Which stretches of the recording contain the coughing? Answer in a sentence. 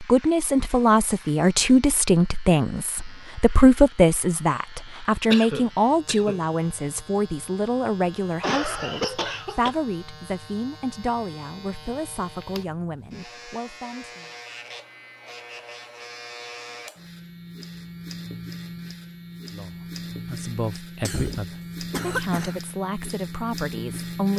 You can hear the coughing from 5.3 to 6.4 s, from 8.4 to 9.8 s and from 21.0 to 22.6 s.